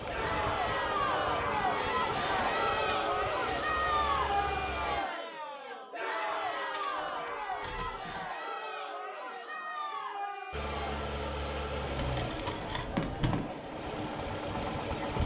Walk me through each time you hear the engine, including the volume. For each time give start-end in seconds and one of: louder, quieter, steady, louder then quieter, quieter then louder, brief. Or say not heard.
0.0-5.0 steady
10.5-15.2 quieter then louder.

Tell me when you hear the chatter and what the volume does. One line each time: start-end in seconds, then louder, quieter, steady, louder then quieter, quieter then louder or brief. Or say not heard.
0.1-15.2 quieter.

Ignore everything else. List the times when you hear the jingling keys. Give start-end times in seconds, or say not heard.
1.4-3.1, 6.3-8.3, 11.9-13.5.